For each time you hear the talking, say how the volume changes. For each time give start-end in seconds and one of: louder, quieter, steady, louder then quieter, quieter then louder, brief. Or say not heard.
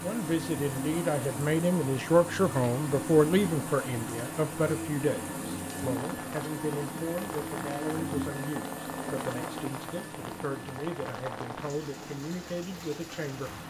0.0-13.6 quieter.